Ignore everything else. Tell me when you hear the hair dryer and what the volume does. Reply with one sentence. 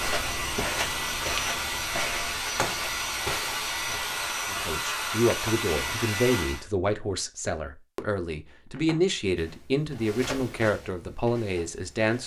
The hair dryer can be heard from 0.0 to 6.7 s, at a steady volume.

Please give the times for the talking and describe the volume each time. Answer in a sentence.
You can hear the talking from 4.5 to 12.2 s, at a steady volume.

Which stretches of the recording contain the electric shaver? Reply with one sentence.
You can't hear the electric shaver here.